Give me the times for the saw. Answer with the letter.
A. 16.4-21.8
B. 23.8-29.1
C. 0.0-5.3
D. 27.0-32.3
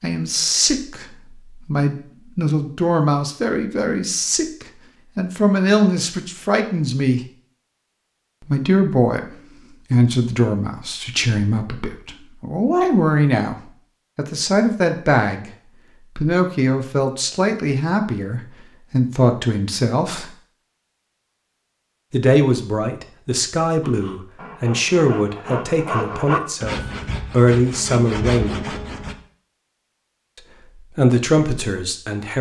B.